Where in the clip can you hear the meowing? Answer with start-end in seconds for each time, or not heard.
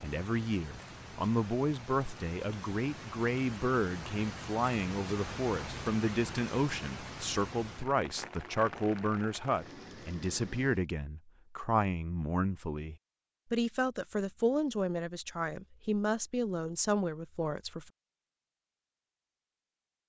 not heard.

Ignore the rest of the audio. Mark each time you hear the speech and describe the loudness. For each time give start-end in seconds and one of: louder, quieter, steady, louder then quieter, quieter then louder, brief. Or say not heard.
0.0-17.9 steady.